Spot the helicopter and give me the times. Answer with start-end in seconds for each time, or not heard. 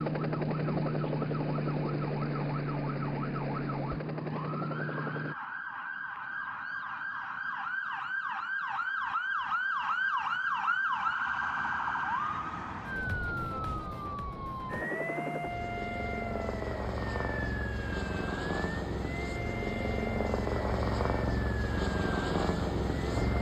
0.0-5.3, 14.7-23.3.